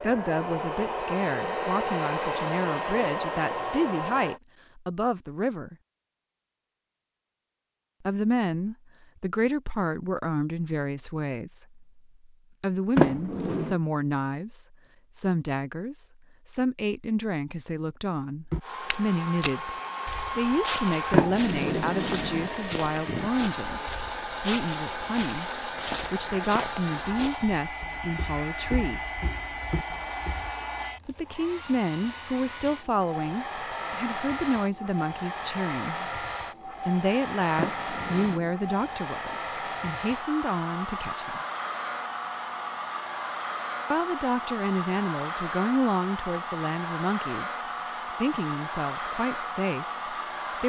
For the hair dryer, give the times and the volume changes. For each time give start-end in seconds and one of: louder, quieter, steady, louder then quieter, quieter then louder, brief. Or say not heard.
0.0-4.4 steady
18.6-50.6 steady.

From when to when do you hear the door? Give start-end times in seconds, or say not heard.
12.9-13.8, 21.1-22.5, 37.5-38.5.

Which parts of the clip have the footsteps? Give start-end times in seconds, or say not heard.
18.5-30.5.